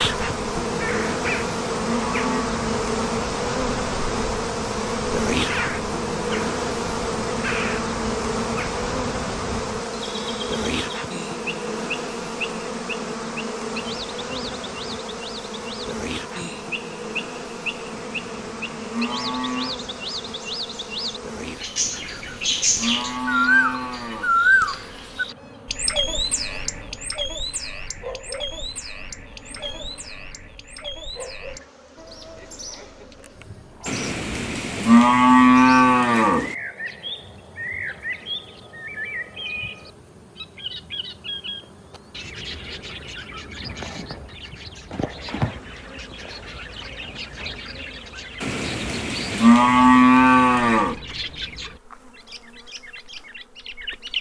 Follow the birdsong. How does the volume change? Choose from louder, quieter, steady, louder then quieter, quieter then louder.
louder then quieter.